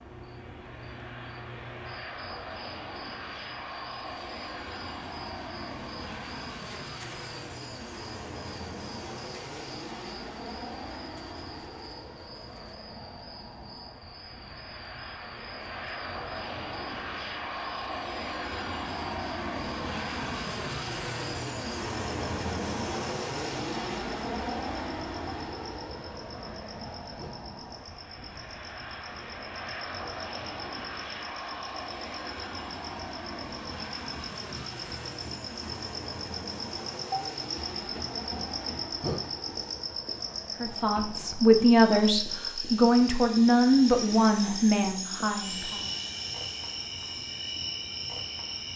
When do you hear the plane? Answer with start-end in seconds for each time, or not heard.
0.0-48.7.